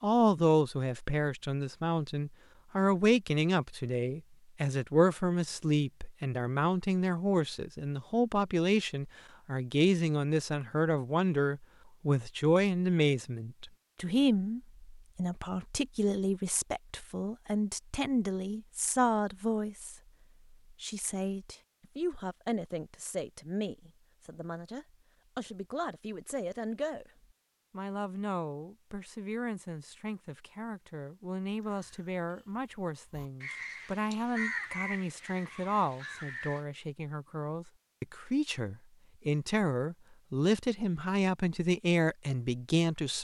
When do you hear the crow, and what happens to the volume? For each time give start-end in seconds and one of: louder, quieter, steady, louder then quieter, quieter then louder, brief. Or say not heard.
31.6-36.6 louder then quieter.